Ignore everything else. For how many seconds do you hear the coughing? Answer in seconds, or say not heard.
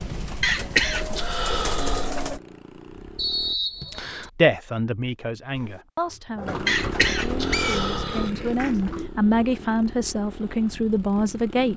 3 s.